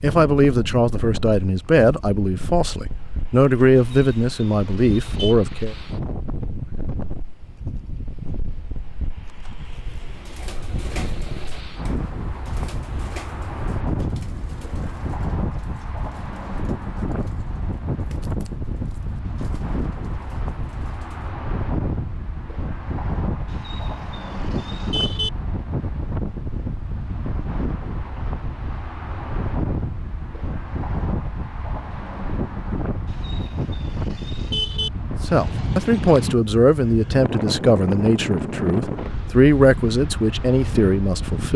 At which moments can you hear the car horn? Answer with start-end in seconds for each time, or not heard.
3.8-5.3, 23.4-25.3, 33.0-34.9.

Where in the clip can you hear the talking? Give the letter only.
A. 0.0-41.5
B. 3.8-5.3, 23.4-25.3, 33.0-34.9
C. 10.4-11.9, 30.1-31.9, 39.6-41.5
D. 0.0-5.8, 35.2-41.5
D.